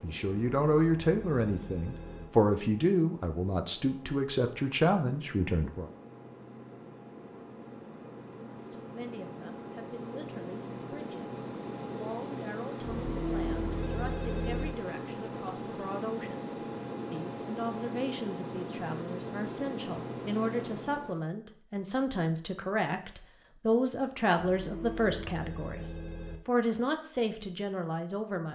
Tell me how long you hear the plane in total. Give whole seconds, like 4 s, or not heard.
21 s.